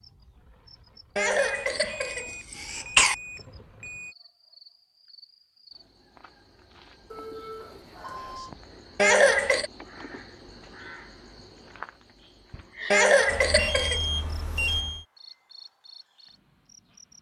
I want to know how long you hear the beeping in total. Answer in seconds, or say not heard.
6 s.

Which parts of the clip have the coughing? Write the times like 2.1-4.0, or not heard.
1.1-3.1, 8.9-9.7, 12.9-14.0.